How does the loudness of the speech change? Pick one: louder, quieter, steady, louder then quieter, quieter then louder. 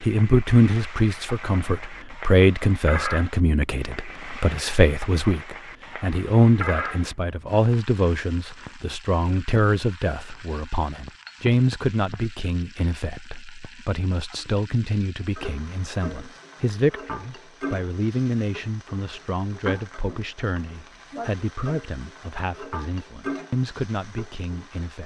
quieter.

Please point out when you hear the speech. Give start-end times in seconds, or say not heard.
0.0-25.0.